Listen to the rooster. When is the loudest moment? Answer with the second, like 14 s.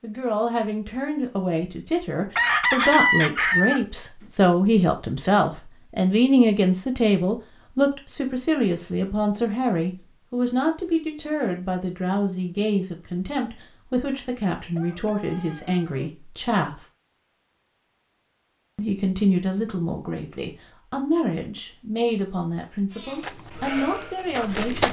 3 s.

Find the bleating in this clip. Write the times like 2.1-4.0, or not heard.
22.9-24.8.